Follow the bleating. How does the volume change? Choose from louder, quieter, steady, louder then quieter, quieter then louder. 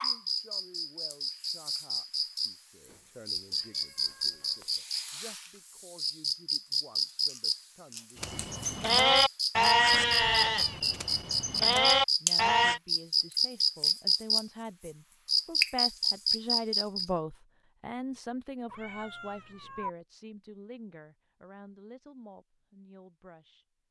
quieter then louder.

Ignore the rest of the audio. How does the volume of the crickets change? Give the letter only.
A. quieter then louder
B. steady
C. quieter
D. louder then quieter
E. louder
E.